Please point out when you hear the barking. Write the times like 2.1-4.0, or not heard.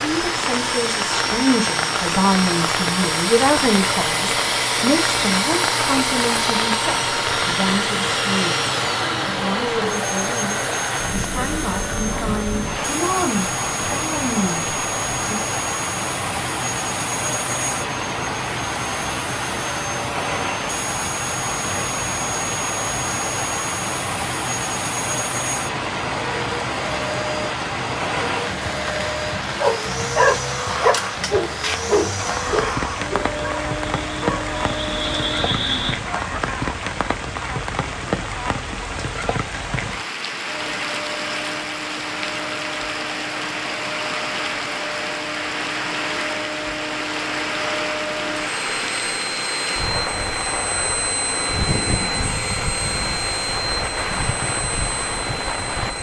29.6-36.0.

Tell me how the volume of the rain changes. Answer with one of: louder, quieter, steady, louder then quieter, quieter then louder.
steady.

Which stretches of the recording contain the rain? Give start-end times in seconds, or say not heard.
0.0-55.9.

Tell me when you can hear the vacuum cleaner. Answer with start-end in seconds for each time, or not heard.
0.0-35.5, 40.5-55.9.